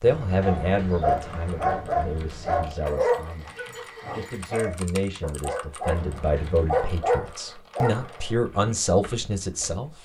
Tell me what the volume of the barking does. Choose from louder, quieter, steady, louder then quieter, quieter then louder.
quieter then louder.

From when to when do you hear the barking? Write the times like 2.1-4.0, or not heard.
0.3-8.4.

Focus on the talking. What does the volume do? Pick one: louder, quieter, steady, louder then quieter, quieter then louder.
quieter then louder.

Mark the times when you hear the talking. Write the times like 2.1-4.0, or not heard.
0.0-9.9.